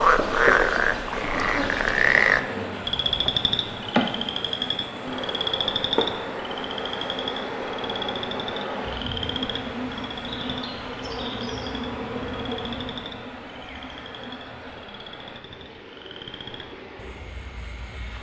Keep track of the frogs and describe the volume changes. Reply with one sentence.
The loudness of the frogs goes down.